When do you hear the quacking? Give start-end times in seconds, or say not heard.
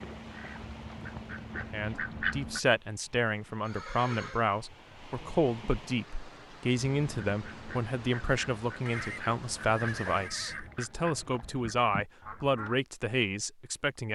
0.0-2.6, 6.9-12.8.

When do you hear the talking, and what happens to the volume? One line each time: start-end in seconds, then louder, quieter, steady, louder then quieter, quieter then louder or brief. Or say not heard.
1.7-14.1 steady.